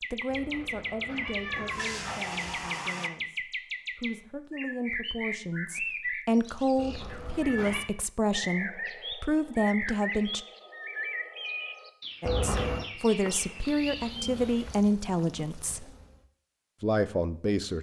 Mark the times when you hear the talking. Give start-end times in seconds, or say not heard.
0.1-10.4, 12.2-15.9, 16.8-17.7.